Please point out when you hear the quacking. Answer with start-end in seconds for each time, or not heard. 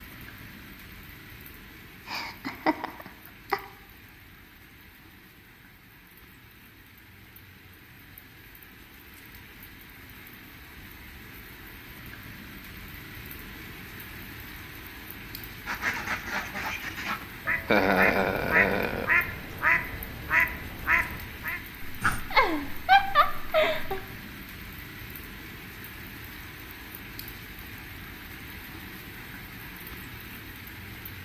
15.7-22.2.